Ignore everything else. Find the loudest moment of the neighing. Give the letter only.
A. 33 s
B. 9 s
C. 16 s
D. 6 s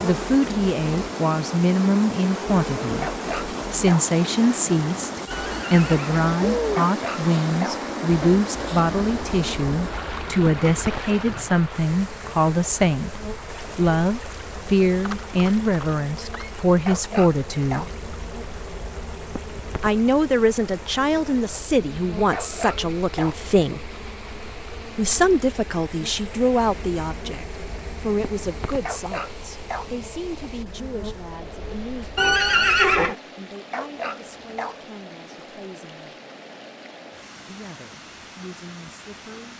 A.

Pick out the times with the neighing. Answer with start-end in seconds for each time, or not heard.
5.2-6.8, 15.1-16.5, 32.1-33.1.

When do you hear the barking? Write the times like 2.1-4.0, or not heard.
3.0-4.2, 6.8-7.9, 16.9-18.0, 22.3-23.4, 28.9-29.9, 33.7-34.9.